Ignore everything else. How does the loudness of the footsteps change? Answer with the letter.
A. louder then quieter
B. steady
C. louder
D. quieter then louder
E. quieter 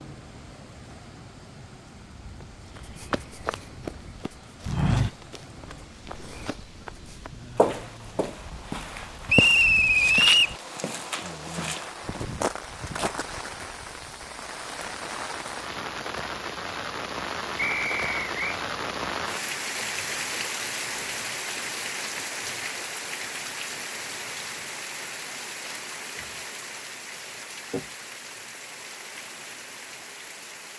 D.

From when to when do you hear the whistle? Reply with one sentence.
The whistle can be heard from 9.2 to 10.6 s and from 17.6 to 18.6 s.